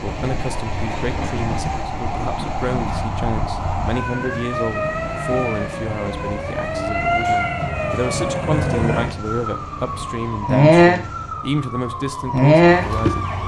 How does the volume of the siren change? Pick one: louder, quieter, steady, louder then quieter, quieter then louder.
louder.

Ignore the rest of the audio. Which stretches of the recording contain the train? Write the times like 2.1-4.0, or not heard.
0.0-11.3.